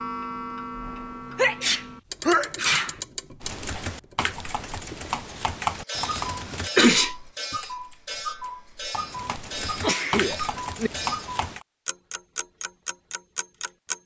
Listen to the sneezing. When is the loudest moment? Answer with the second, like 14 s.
7 s.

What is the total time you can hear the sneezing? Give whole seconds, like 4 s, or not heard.
4 s.